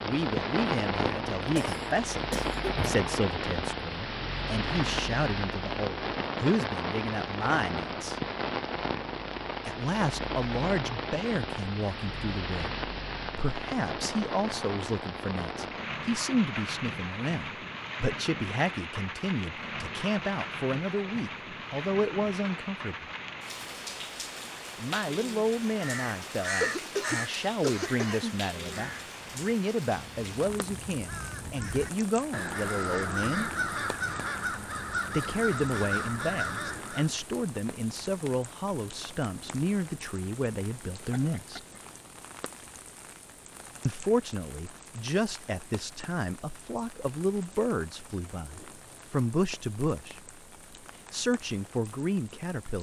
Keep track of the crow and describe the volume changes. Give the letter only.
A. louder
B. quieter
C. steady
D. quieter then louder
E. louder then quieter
D.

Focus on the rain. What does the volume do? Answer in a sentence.
The loudness of the rain goes down.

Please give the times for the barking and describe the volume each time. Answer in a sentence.
You can't hear the barking here.